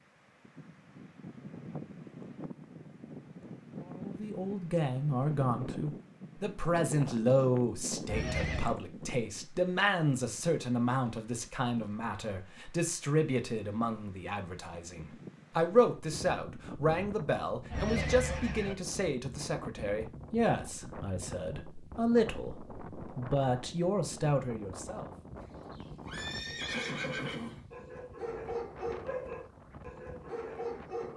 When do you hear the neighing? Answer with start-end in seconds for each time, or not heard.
8.1-8.8, 17.7-18.8, 25.4-27.9.